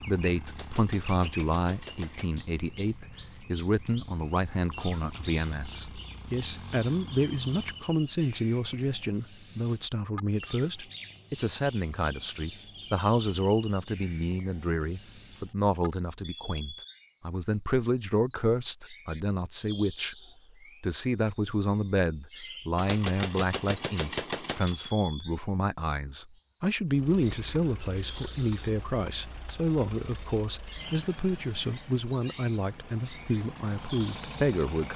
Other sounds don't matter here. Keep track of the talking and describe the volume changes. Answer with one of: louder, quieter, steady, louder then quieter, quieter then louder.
steady.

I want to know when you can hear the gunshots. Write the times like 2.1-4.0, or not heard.
0.5-2.5, 22.8-24.8.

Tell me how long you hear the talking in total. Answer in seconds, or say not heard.
34 s.